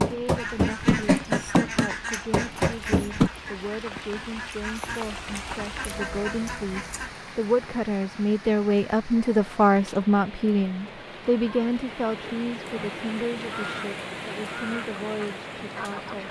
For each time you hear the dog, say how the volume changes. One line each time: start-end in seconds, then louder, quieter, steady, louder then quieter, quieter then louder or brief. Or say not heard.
not heard.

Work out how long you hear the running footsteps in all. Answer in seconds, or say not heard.
3 s.